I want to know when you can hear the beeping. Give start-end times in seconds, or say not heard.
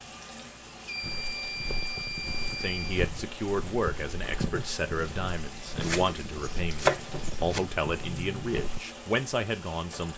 0.8-2.9, 8.0-8.4.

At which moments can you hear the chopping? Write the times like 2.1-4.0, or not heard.
5.8-7.6.